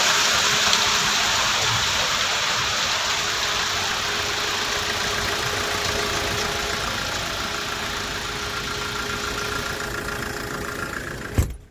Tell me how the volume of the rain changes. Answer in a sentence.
The volume of the rain goes down.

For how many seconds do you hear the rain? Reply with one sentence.
You can hear the rain for 10 seconds altogether.